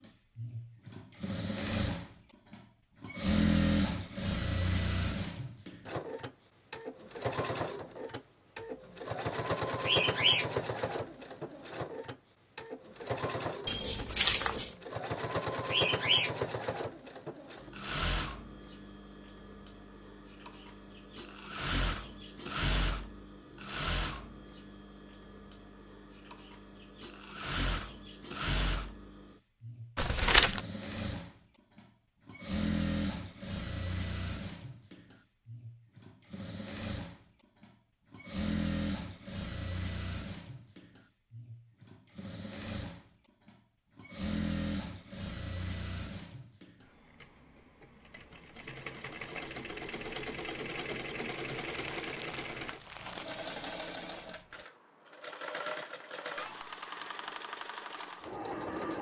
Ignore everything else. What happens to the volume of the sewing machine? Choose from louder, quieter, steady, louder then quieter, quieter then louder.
quieter.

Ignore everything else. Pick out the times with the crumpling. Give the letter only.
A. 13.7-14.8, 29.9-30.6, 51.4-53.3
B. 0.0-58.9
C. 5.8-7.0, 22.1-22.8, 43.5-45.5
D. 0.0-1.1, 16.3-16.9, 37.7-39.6
A.